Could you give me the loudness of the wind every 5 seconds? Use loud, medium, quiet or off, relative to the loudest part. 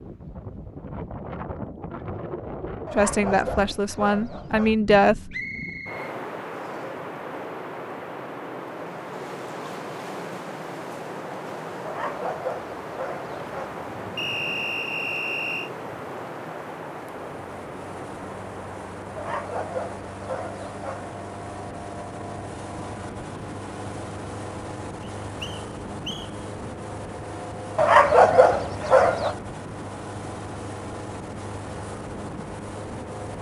loud, loud, loud, loud, medium, medium, medium.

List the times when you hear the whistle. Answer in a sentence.
You can hear the whistle from 5.3 to 6.8 s, from 14.2 to 15.7 s and from 25.0 to 26.3 s.